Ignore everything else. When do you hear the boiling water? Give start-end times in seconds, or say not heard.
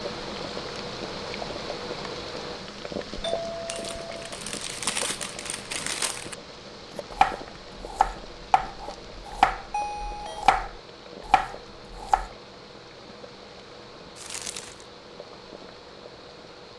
0.0-16.7.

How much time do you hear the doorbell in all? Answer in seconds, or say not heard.
2 s.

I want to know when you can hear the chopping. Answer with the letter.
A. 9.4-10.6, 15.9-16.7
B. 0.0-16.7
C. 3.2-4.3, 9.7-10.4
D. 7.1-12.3
D.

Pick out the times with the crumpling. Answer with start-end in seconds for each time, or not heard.
3.6-6.3, 14.2-14.8.